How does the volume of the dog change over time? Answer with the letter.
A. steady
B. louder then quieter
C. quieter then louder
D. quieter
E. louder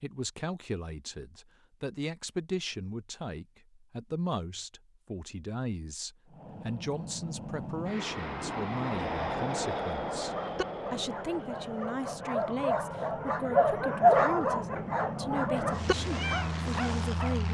B.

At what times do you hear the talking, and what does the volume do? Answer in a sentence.
The talking can be heard from 0.0 to 17.5 s, at a steady volume.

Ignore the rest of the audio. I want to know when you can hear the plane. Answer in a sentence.
The plane can be heard from 6.2 to 17.5 s.